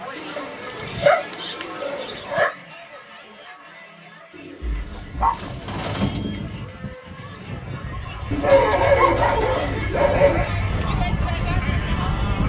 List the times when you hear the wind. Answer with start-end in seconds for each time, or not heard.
5.3-12.4.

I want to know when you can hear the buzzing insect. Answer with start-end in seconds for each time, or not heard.
not heard.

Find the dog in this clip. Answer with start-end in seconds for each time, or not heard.
0.3-2.5, 4.6-6.7, 8.4-10.5.